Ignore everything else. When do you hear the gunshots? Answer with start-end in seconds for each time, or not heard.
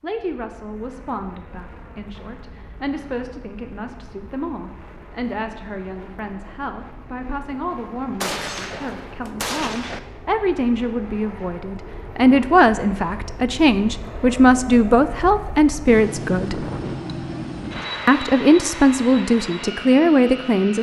8.2-10.0.